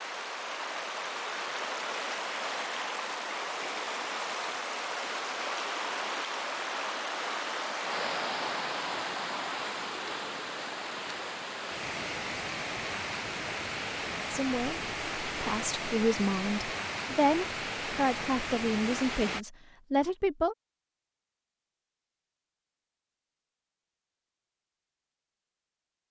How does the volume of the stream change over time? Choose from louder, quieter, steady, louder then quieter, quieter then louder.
steady.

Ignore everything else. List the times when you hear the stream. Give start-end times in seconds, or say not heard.
0.0-19.4.